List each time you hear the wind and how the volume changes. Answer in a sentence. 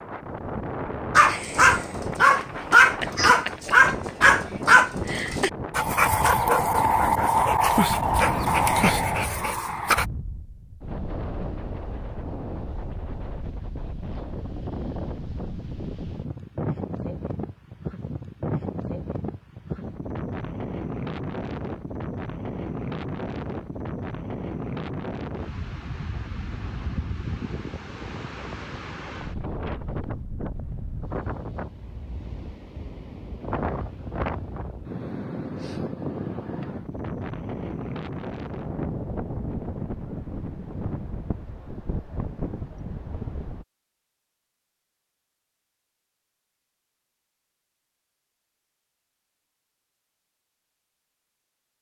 You can hear the wind from 0.0 to 43.6 s, at a steady volume.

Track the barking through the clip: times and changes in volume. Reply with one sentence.
You can hear the barking from 1.1 to 10.1 s, getting quieter.